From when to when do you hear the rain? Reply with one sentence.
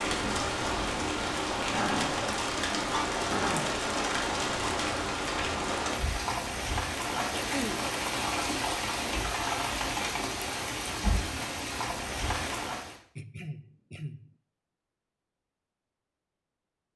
You can hear the rain from 0.0 to 13.0 s.